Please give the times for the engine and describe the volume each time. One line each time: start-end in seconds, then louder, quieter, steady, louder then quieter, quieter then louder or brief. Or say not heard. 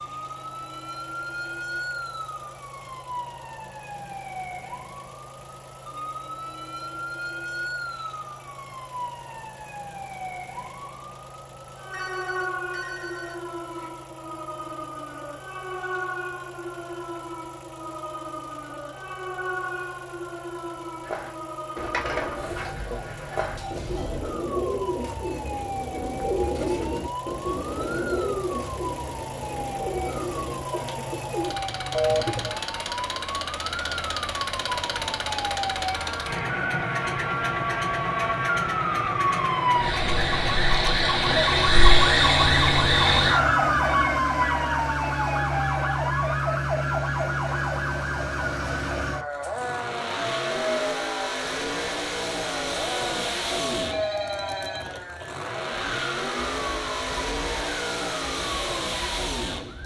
0.0-59.8 louder.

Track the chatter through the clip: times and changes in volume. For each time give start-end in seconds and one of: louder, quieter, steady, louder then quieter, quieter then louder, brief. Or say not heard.
not heard.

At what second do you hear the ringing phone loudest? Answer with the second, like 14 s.
32 s.